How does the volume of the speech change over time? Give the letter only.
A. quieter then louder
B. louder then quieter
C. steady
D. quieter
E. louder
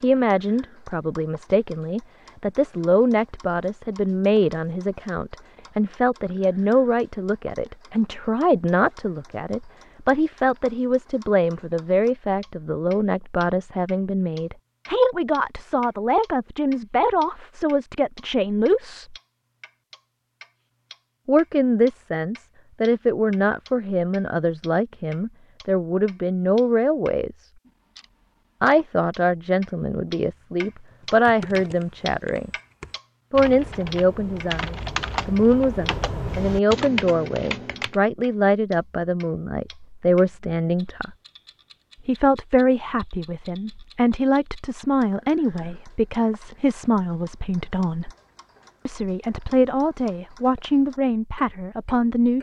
C.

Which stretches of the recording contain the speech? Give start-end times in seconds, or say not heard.
0.0-19.1, 21.2-27.5, 28.6-32.5, 33.3-41.1, 42.0-48.1, 48.9-52.3.